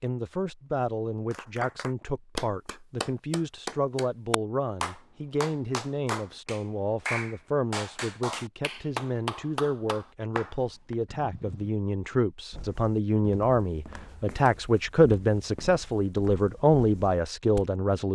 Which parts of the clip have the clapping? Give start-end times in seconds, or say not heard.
1.3-10.9.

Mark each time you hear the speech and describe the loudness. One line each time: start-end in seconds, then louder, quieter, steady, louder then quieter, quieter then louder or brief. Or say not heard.
0.0-18.1 louder.